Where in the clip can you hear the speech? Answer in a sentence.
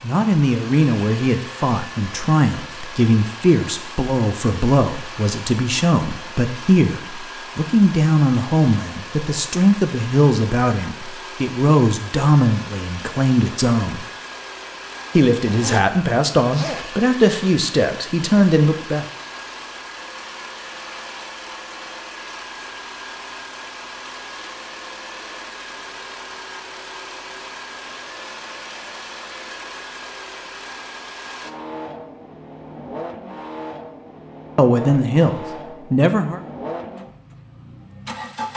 You can hear the speech from 0.0 to 14.1 s, from 15.2 to 19.1 s and from 34.5 to 36.4 s.